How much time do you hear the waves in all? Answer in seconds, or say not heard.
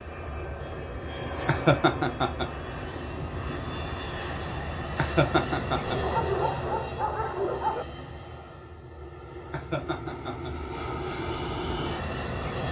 not heard.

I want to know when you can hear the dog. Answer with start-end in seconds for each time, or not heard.
5.8-7.8.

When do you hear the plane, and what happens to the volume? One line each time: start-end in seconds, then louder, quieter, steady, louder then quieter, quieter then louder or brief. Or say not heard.
0.0-12.6 quieter then louder.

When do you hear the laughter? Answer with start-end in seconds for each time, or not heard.
1.4-2.5, 5.0-6.0, 9.5-10.5.